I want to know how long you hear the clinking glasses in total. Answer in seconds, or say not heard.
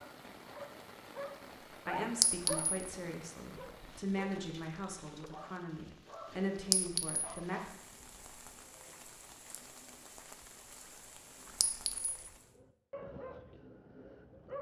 2 s.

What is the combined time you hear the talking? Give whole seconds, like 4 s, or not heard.
6 s.